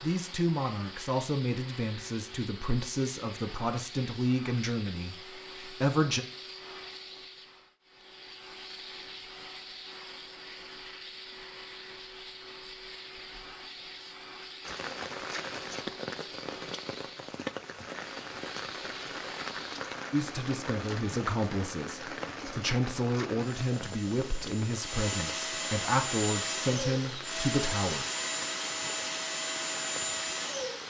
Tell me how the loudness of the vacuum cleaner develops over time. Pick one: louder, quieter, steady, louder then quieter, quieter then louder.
louder.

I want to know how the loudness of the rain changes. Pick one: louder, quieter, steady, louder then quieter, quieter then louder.
quieter.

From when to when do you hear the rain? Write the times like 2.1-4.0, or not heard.
14.6-30.8.